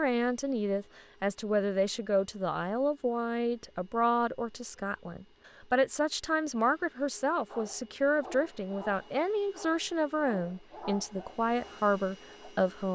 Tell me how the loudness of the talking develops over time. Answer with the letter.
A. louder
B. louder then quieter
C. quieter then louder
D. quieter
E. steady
E.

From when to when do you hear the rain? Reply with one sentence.
You can't hear the rain here.